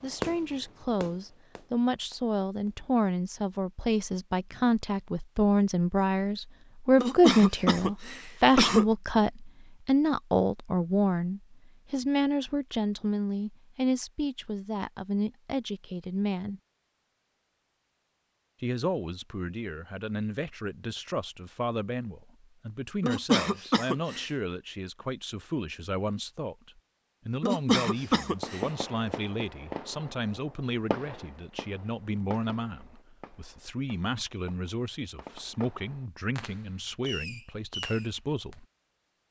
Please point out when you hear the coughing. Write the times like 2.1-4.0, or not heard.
7.0-8.8, 23.0-24.2, 27.4-28.6.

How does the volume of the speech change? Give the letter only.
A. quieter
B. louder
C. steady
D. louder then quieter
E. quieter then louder
A.